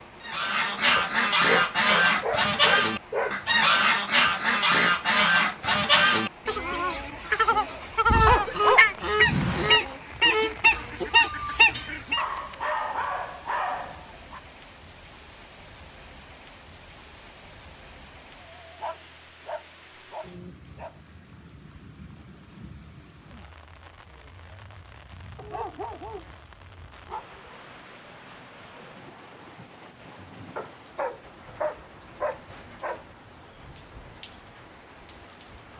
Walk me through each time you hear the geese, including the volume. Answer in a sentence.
You can hear the geese from 0.2 to 12.2 s, at a steady volume.